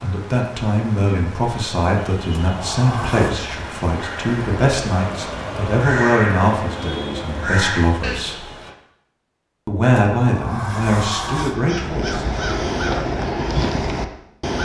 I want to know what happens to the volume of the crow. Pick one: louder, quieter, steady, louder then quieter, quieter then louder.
louder.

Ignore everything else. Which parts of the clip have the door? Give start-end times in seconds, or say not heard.
2.3-3.4, 9.9-11.6.